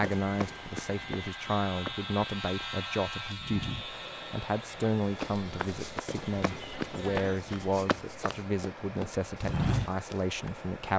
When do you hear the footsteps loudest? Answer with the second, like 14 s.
10 s.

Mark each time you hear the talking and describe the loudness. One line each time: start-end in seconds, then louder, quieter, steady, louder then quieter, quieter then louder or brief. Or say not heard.
0.0-10.9 steady.